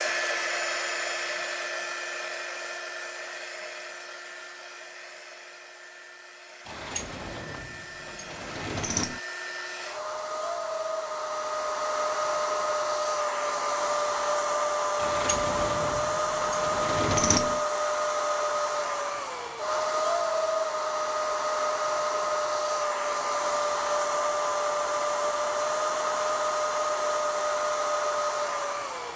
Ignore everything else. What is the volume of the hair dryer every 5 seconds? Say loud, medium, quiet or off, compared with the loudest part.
medium, quiet, loud, loud, loud, loud.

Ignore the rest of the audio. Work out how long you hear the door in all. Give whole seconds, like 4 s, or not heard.
5 s.